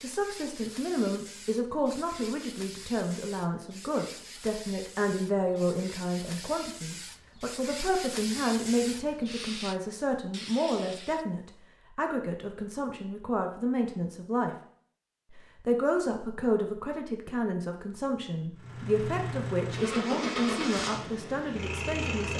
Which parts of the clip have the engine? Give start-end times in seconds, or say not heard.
18.6-22.3.